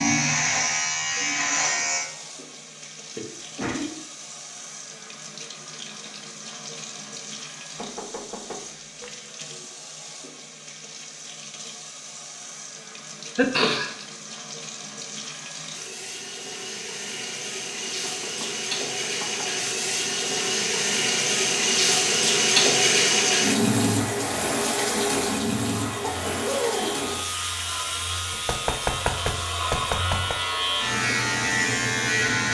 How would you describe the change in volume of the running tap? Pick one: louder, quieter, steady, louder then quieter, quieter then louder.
louder then quieter.